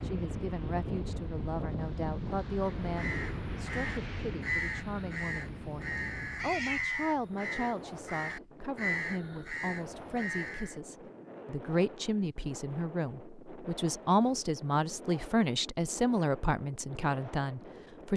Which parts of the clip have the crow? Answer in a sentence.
The crow can be heard from 2.9 to 10.8 s.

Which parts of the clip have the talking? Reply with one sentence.
The talking can be heard from 0.0 to 18.1 s.